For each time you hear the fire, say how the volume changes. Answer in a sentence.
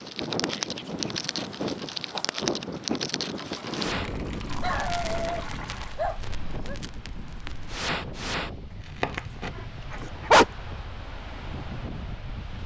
The fire can be heard from 0.0 to 9.6 s, getting quieter then louder.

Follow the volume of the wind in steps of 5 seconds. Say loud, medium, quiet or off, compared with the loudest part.
loud, medium, medium.